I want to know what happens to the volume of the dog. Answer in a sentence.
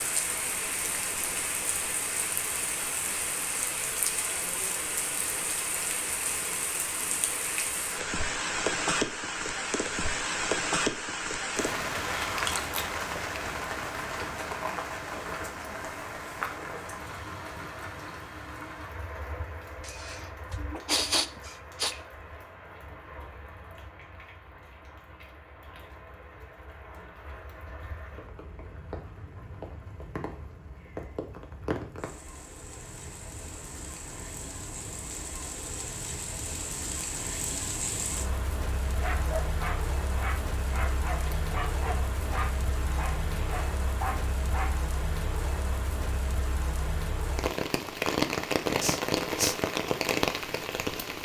The loudness of the dog stays about the same.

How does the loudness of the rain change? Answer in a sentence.
The volume of the rain goes down, then up.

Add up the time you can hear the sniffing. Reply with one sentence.
The sniffing can be heard for 3 seconds in total.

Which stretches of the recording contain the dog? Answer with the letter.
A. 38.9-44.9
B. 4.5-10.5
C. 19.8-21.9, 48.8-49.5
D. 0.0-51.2
A.